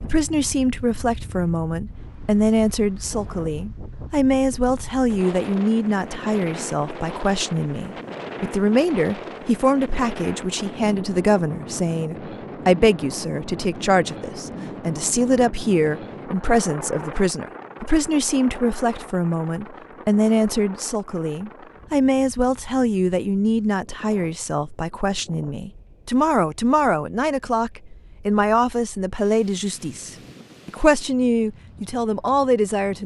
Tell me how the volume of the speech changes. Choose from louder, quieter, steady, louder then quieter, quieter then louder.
steady.